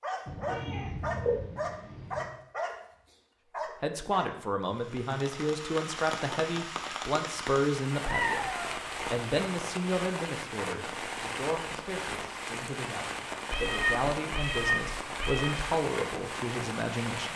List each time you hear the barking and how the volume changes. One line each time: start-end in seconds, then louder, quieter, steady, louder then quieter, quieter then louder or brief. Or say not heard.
0.0-4.3 steady.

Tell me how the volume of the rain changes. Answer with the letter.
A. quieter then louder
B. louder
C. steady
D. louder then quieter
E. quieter
C.